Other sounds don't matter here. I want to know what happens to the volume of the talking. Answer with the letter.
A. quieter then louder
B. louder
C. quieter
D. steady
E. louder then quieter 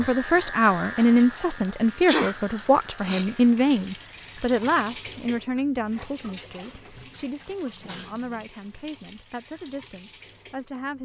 C.